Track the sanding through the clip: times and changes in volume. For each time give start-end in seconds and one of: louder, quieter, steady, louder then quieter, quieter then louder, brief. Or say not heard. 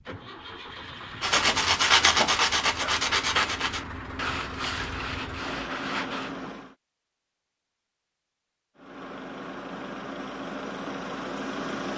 1.2-6.3 quieter.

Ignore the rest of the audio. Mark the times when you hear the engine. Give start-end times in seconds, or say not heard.
0.0-6.8, 8.8-11.9.